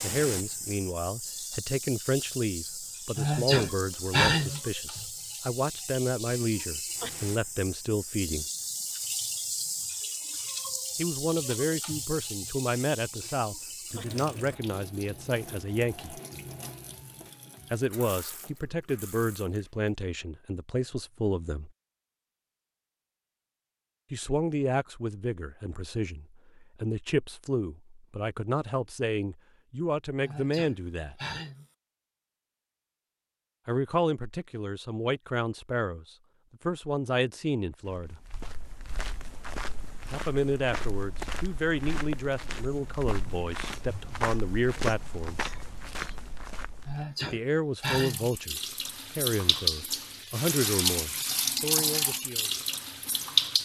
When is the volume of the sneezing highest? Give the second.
4 s.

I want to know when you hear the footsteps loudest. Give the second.
45 s.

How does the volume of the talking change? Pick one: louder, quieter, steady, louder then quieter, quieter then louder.
steady.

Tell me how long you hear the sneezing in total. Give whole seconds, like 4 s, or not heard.
4 s.